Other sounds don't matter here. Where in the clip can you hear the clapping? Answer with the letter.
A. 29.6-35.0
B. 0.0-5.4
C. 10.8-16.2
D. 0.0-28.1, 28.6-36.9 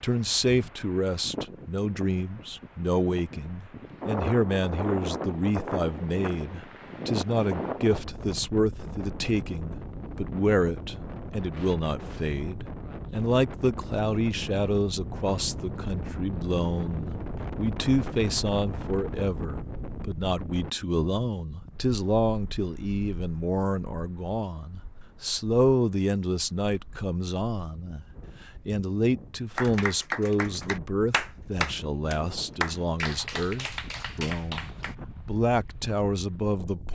A.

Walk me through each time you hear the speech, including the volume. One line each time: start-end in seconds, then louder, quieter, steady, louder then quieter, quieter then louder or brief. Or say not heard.
0.0-28.1 steady
28.6-36.9 quieter then louder.